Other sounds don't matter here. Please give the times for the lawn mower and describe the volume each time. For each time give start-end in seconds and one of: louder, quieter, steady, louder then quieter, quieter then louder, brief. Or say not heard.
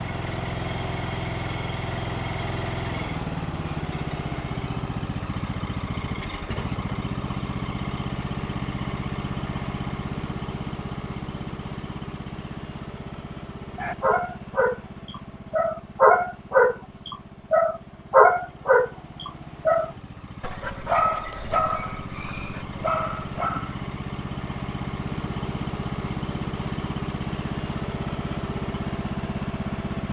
0.0-30.0 quieter then louder.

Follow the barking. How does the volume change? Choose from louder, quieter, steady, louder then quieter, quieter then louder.
louder then quieter.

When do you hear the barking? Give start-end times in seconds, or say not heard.
13.8-23.9.